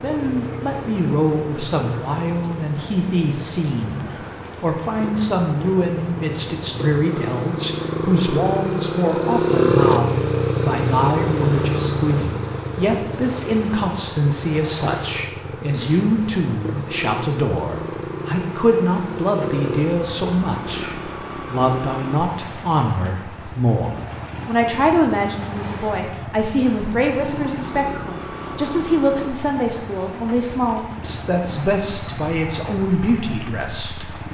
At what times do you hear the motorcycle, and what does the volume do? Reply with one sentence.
You can hear the motorcycle from 0.0 to 34.2 s, getting louder then quieter.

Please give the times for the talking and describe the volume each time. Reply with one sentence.
The talking can be heard from 0.0 to 34.0 s, at a steady volume.